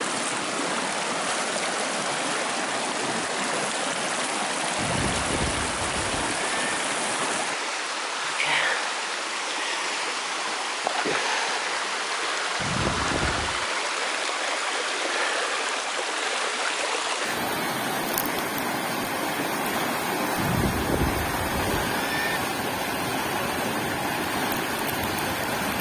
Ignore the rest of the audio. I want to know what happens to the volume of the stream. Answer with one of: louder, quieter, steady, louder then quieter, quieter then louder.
steady.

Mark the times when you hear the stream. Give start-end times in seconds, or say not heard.
0.0-25.7.